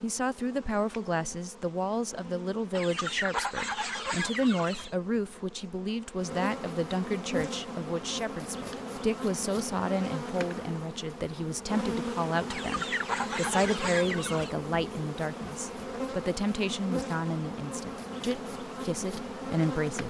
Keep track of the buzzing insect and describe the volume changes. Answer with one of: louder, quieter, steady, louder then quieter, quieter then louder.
louder.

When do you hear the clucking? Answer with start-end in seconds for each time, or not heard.
2.8-5.0, 12.5-14.5.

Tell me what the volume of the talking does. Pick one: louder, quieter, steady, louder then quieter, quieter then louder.
steady.